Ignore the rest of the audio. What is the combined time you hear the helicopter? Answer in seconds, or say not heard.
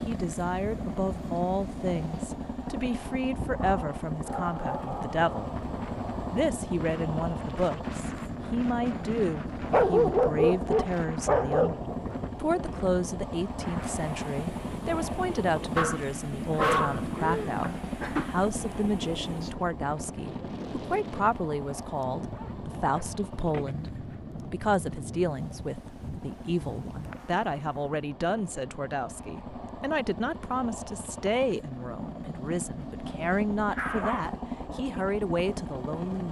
36 s.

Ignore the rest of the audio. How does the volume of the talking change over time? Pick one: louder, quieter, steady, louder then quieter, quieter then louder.
steady.